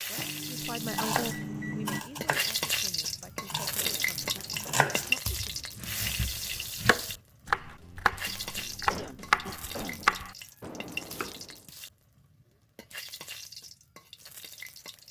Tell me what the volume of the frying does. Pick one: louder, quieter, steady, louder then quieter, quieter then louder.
quieter.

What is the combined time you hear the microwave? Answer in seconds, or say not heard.
2 s.